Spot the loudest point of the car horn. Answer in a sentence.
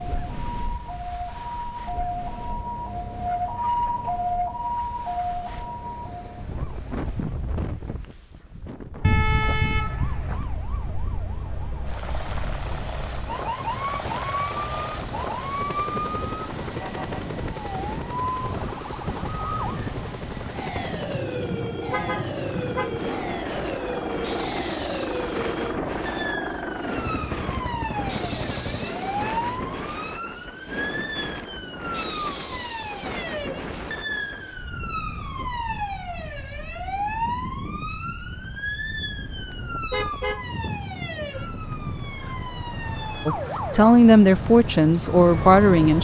The loudest moment of the car horn is at 9 seconds.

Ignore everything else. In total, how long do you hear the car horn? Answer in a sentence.
You can hear the car horn for 3 seconds altogether.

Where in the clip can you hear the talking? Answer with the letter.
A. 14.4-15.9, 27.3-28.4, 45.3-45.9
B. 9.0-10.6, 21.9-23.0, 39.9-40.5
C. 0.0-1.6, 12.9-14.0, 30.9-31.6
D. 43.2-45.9
D.